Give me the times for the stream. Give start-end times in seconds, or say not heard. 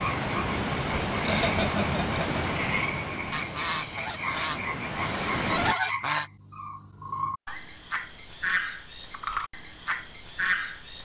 0.0-5.8.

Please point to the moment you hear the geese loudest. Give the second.
6 s.